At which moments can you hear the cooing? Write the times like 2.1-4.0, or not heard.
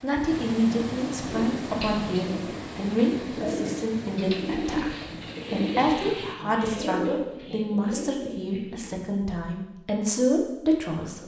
1.2-8.9.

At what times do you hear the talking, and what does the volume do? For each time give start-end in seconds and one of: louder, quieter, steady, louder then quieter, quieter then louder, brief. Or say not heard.
0.0-11.2 steady.